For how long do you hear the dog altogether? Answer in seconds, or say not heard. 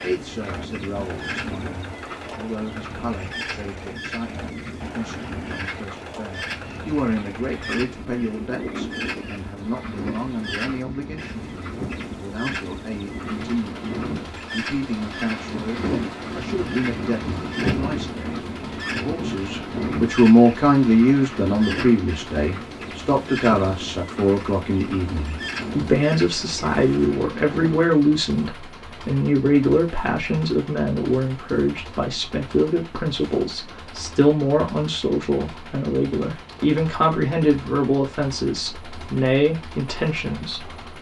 not heard.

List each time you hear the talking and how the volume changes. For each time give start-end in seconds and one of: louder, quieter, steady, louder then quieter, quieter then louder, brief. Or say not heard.
0.0-40.7 louder.